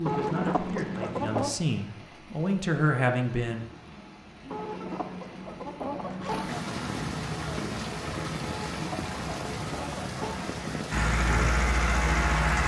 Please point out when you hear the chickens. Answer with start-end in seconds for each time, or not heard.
0.1-1.6, 4.5-6.6, 8.4-10.6.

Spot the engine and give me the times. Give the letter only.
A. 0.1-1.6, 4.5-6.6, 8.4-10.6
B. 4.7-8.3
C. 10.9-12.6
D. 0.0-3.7
C.